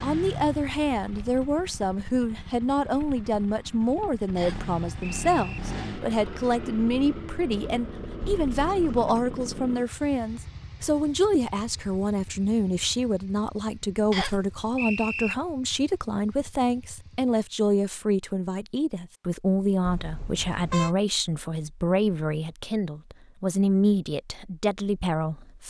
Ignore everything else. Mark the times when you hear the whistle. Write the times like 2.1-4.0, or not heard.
4.3-5.6, 14.1-15.3.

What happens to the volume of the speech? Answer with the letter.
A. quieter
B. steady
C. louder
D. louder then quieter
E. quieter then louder
B.